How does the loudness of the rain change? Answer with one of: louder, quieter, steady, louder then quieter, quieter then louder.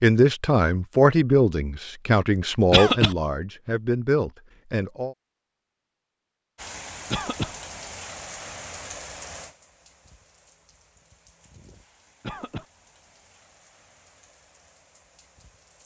quieter.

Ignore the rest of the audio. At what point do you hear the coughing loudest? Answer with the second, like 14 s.
3 s.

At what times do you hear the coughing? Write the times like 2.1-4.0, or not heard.
2.7-3.1, 7.1-7.5, 12.2-12.7.